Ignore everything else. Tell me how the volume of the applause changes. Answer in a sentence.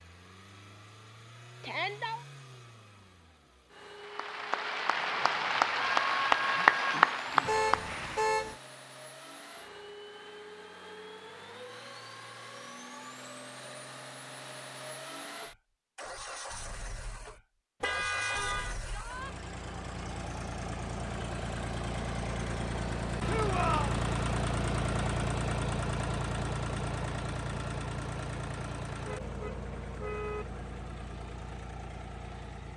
The volume of the applause goes up, then down.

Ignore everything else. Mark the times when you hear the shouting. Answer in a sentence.
You can hear the shouting from 1.6 to 2.2 s, from 18.8 to 19.4 s and from 23.2 to 23.9 s.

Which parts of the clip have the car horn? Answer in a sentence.
The car horn can be heard from 7.5 to 8.6 s, from 17.8 to 18.8 s and from 29.1 to 30.4 s.